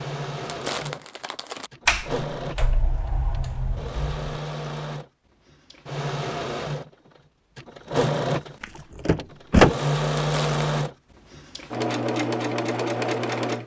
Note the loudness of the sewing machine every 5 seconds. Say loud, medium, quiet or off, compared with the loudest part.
medium, loud, loud.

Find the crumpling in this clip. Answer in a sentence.
You can hear the crumpling from 0.5 to 1.7 s and from 10.2 to 10.7 s.